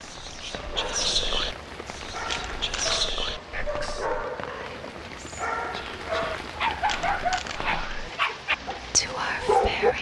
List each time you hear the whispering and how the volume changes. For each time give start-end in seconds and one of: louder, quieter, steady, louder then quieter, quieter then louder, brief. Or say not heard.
0.0-9.9 quieter then louder.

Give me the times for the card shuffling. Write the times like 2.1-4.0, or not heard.
2.3-3.0, 6.8-7.7.